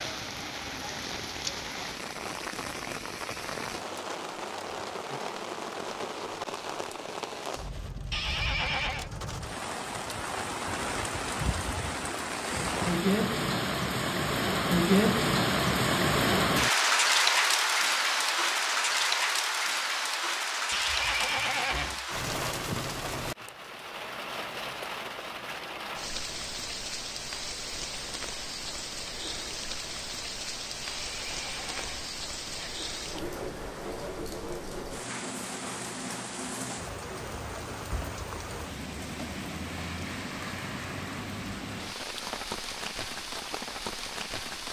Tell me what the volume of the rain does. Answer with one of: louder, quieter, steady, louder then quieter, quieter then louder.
louder then quieter.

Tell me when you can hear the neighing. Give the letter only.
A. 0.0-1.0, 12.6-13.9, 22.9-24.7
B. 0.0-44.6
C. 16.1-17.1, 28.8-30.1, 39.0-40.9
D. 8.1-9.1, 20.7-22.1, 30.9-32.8
D.